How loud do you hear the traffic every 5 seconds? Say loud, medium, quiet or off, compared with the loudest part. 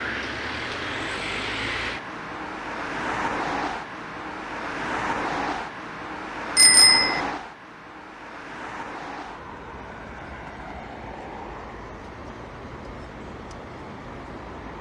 loud, loud, medium.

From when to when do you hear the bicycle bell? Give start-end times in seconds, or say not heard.
6.5-7.2.